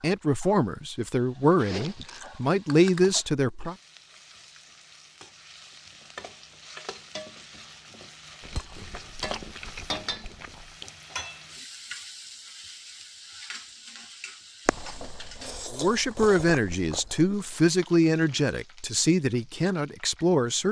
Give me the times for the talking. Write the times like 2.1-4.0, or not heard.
0.0-3.8, 15.7-20.6.